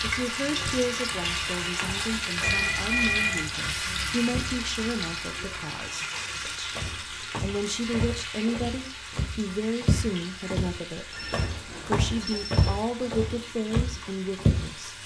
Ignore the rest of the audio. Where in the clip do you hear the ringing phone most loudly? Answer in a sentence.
The loudest moment of the ringing phone is at 3 seconds.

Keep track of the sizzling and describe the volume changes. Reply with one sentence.
The loudness of the sizzling goes down.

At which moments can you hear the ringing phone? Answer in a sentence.
The ringing phone can be heard from 2.4 to 3.5 s and from 11.1 to 12.7 s.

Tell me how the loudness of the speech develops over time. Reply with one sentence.
The volume of the speech stays about the same.